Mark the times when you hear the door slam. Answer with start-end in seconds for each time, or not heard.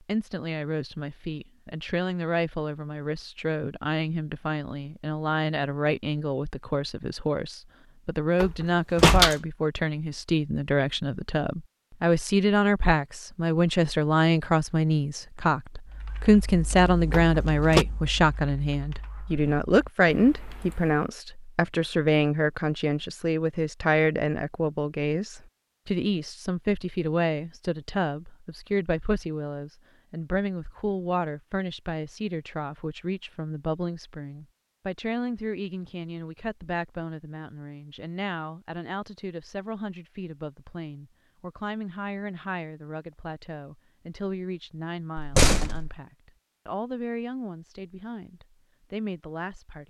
8.4-9.3, 17.1-17.9, 45.1-46.0.